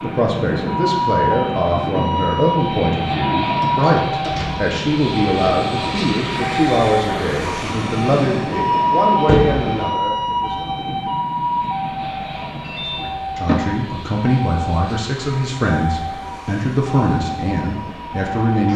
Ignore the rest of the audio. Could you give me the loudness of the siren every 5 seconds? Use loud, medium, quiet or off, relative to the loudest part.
loud, loud, loud, medium.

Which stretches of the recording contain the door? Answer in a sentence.
You can hear the door from 3.5 to 4.7 s, from 9.2 to 9.7 s and from 12.6 to 13.6 s.